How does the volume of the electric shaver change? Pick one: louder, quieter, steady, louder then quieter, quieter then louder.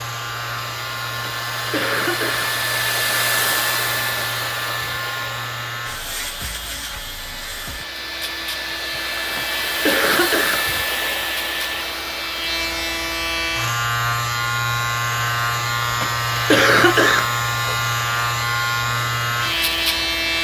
louder.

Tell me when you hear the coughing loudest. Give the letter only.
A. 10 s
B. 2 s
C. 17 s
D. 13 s
C.